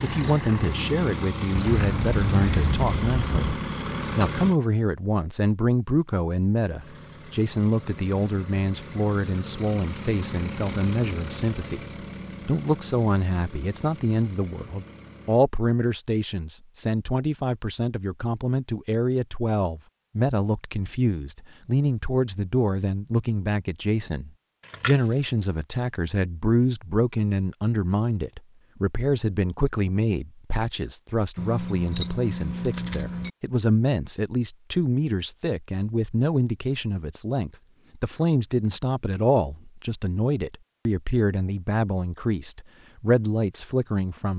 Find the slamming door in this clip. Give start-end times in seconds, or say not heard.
not heard.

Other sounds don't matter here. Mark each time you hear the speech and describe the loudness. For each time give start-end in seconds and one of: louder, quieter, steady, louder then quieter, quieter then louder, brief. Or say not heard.
0.0-44.3 steady.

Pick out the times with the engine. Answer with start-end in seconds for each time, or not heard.
0.0-4.6, 6.8-15.4.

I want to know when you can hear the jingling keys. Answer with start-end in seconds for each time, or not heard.
1.5-3.5, 24.6-25.4, 31.4-33.3.